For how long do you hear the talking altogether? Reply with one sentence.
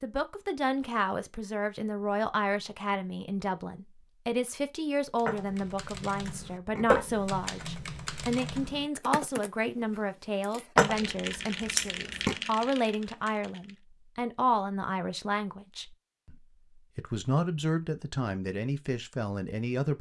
You can hear the talking for 20 seconds altogether.